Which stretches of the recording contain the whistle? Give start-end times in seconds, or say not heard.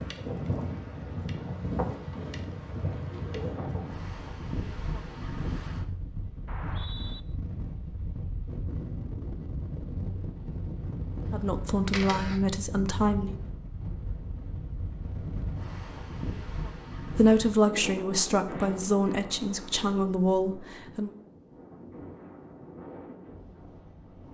6.5-7.2.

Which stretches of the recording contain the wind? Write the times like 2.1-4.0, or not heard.
0.0-24.2.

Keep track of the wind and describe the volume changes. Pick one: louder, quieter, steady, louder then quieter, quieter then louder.
quieter.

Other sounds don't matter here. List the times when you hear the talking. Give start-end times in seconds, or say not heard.
11.3-13.3, 17.1-21.1.